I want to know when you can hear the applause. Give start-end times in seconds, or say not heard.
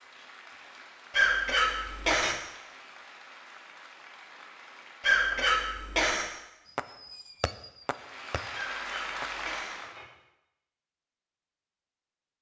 0.0-5.2, 7.8-9.9.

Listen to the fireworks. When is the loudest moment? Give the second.
7 s.